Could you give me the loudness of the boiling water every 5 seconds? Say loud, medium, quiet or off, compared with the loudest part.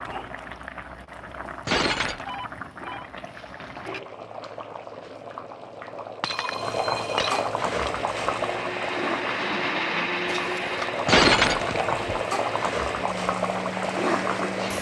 medium, loud, loud.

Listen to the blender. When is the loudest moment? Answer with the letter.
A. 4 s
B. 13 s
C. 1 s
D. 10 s
D.